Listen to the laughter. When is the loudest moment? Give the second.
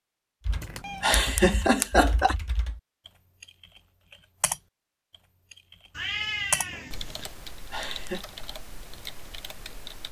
2 s.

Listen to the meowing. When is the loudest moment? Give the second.
6 s.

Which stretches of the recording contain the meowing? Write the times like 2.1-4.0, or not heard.
0.5-1.2, 6.0-7.3.